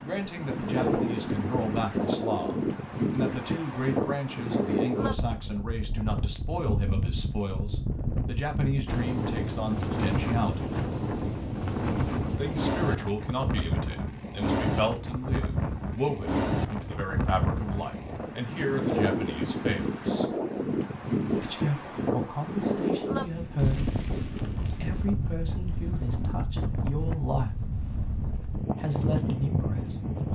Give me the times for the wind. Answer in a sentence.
You can hear the wind from 0.0 to 30.2 s.